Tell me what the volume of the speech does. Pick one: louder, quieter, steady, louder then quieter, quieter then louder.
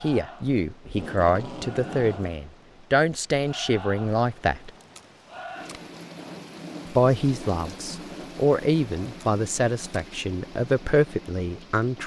steady.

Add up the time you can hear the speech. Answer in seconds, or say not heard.
10 s.